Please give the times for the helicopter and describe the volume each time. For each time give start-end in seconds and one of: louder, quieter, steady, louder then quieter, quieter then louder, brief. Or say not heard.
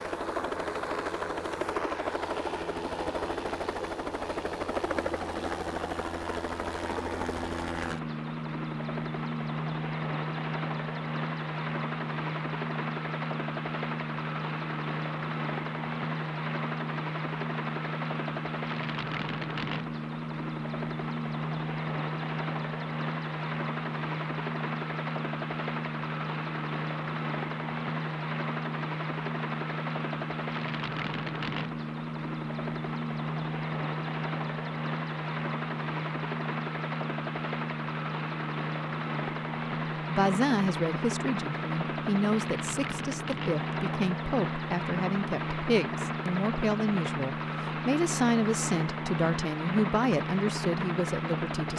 0.0-51.7 steady.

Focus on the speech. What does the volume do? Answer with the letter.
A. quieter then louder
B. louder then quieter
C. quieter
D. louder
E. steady
E.